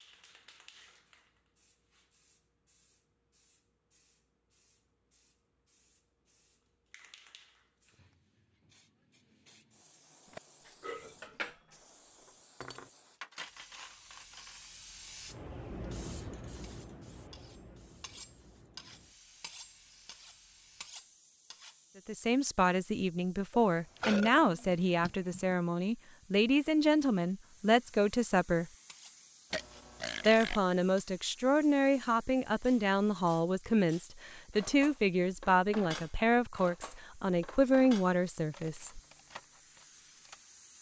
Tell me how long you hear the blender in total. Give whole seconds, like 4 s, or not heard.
not heard.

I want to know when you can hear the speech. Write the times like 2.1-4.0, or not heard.
22.1-28.7, 30.2-39.0.